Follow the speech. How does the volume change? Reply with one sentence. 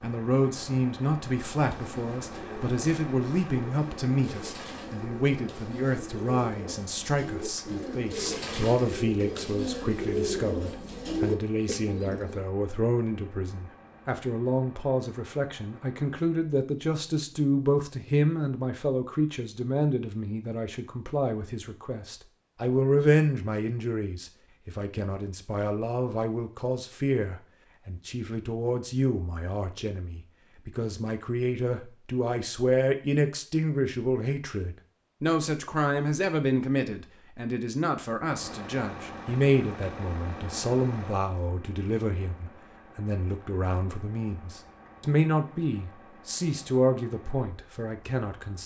The loudness of the speech stays about the same.